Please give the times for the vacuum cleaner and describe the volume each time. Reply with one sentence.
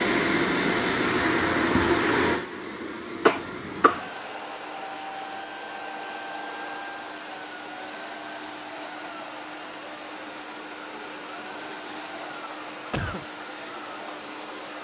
The vacuum cleaner can be heard from 0.0 to 14.7 s, getting quieter.